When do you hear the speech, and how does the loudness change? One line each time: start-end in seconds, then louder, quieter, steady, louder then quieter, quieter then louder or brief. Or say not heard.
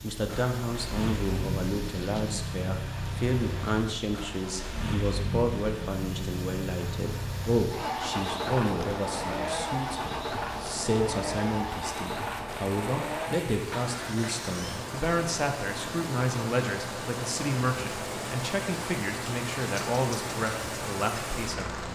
0.0-21.8 steady.